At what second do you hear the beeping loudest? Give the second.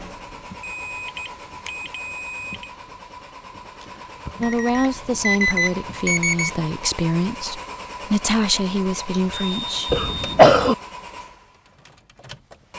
5 s.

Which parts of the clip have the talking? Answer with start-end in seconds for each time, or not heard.
4.4-9.9.